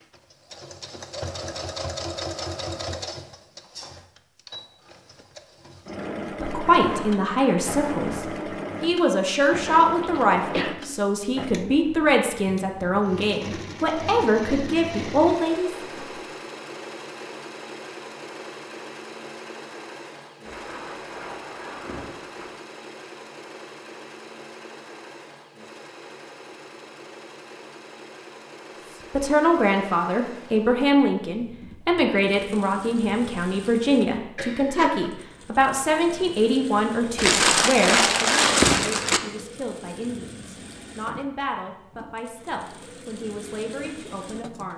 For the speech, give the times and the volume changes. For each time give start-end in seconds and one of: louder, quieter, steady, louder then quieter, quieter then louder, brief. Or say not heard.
6.0-15.8 steady
29.1-44.7 quieter.